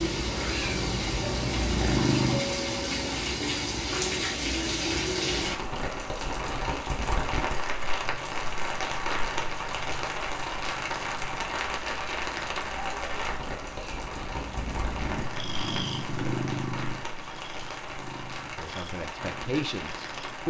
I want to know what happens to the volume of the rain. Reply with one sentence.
The loudness of the rain goes down.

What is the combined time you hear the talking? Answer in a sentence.
The talking can be heard for 2 seconds in total.